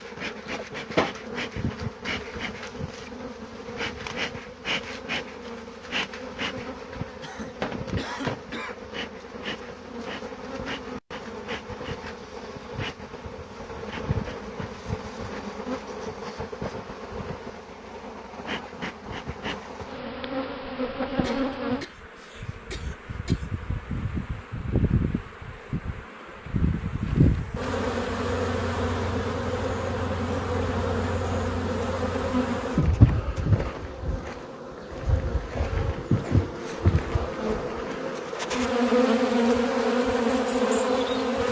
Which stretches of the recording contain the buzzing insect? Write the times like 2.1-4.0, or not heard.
0.0-41.4.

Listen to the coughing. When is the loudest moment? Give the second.
8 s.